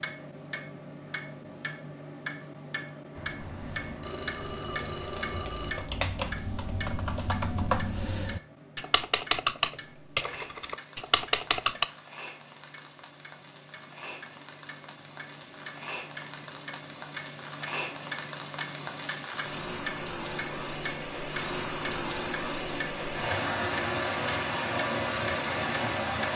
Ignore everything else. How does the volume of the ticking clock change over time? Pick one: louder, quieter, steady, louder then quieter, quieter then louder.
quieter then louder.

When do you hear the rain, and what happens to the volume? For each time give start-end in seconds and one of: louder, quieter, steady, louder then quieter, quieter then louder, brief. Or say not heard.
10.2-26.3 louder.